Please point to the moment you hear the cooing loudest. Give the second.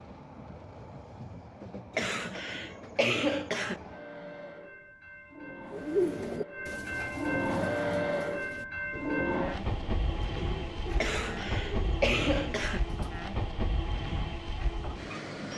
6 s.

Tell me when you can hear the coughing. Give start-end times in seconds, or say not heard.
1.9-3.8, 11.0-12.8.